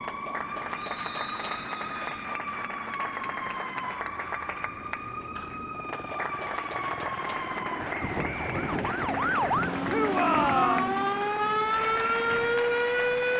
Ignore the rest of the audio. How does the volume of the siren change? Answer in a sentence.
The volume of the siren goes up.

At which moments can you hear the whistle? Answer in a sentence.
You can hear the whistle from 0.8 to 2.2 s and from 7.9 to 8.8 s.